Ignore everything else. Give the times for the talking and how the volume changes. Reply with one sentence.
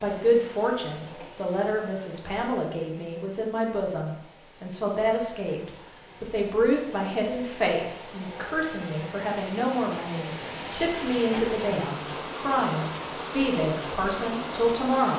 The talking can be heard from 0.0 to 15.1 s, at a steady volume.